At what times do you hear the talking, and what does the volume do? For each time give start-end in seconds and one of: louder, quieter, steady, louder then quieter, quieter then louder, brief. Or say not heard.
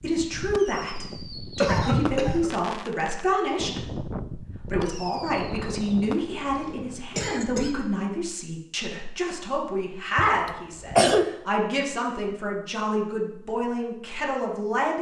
0.0-14.9 steady.